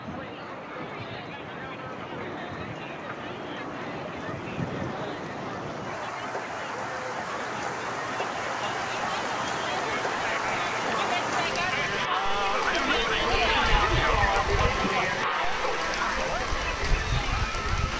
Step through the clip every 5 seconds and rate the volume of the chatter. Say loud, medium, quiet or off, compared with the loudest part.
quiet, medium, loud, loud.